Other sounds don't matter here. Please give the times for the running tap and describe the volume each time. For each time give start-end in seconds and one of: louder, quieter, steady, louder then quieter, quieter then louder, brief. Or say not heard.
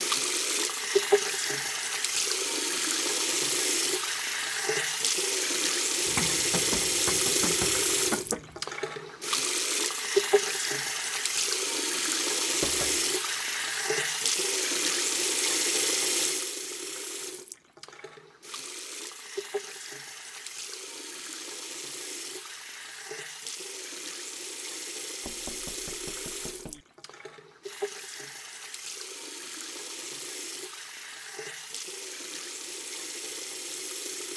0.0-34.3 quieter.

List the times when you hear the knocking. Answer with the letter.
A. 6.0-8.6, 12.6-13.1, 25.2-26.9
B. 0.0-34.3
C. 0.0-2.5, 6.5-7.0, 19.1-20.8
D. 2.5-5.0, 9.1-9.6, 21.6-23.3
A.